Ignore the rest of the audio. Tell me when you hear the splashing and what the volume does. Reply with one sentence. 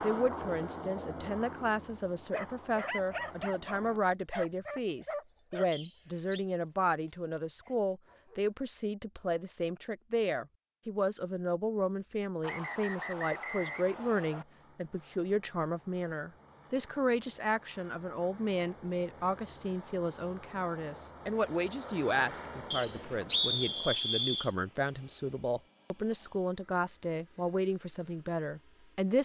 You can't hear the splashing here.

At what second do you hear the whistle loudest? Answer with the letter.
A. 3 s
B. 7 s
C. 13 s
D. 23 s
D.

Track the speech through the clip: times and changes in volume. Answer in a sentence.
You can hear the speech from 0.0 to 29.2 s, at a steady volume.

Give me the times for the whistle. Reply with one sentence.
You can hear the whistle from 5.7 to 6.5 s, from 12.4 to 14.4 s and from 22.7 to 24.5 s.